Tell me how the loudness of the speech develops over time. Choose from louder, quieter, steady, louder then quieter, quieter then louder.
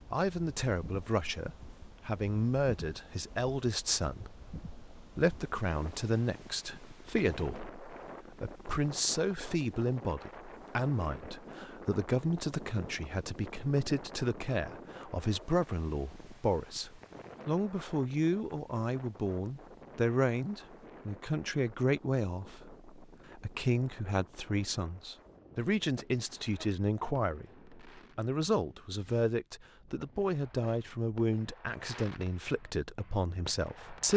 steady.